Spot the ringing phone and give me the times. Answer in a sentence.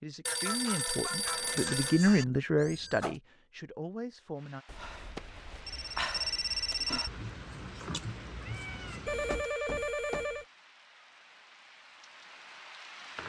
The ringing phone can be heard from 0.2 to 2.2 s, from 4.7 to 7.1 s and from 9.1 to 10.4 s.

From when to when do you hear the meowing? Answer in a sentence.
The meowing can be heard from 2.5 to 3.2 s and from 7.0 to 9.4 s.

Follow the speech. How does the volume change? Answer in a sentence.
The loudness of the speech goes up, then down.